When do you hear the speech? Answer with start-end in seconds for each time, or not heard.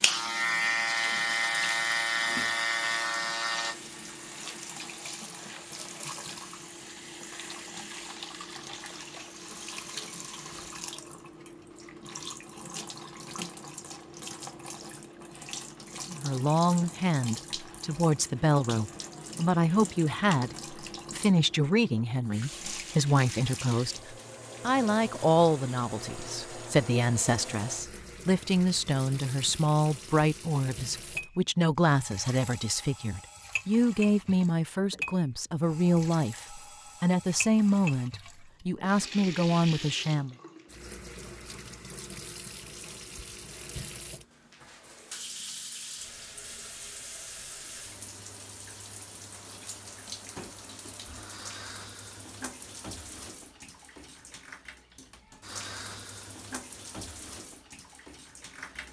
16.1-40.4.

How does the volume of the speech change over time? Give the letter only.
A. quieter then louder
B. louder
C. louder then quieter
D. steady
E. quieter
D.